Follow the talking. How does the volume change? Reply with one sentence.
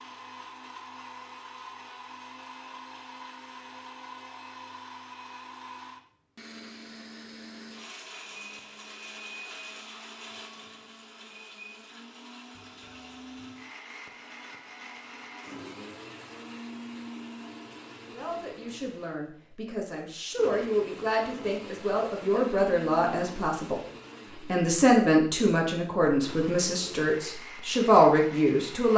The volume of the talking goes up.